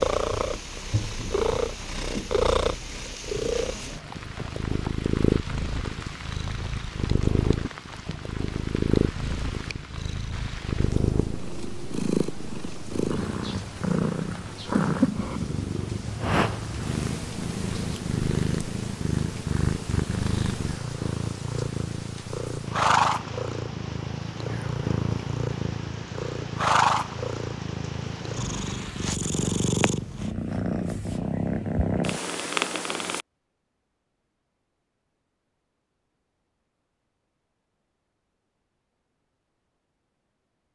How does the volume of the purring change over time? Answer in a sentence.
The volume of the purring stays about the same.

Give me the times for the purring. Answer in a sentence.
You can hear the purring from 0.0 to 33.2 s.